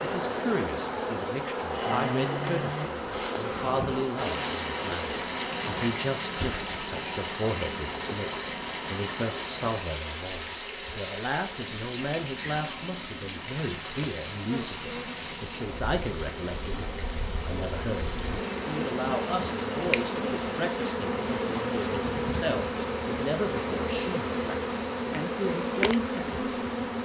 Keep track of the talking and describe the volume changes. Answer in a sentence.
The volume of the talking stays about the same.